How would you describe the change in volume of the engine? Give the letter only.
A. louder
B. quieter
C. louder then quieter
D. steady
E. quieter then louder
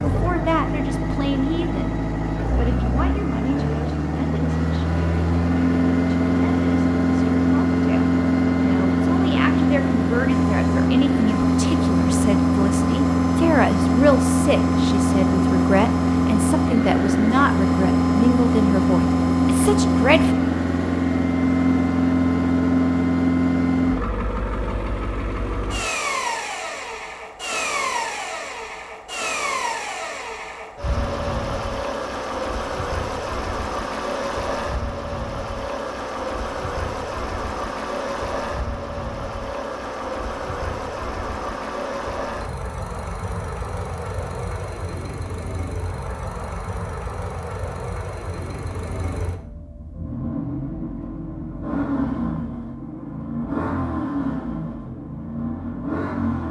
B.